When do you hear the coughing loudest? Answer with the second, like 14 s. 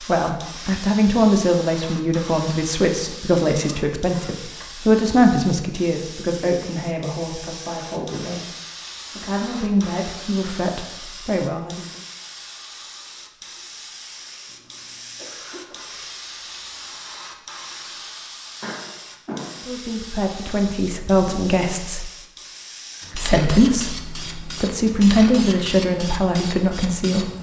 19 s.